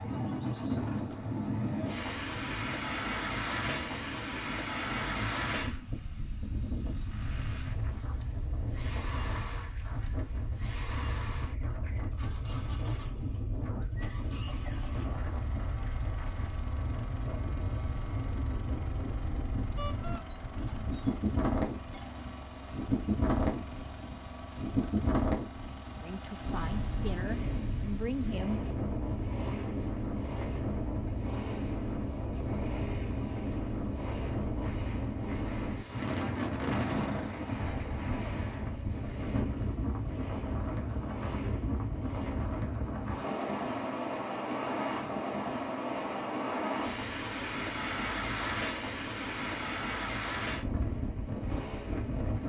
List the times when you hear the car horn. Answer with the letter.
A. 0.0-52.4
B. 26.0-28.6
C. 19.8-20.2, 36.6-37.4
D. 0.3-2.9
C.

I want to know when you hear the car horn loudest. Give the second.
37 s.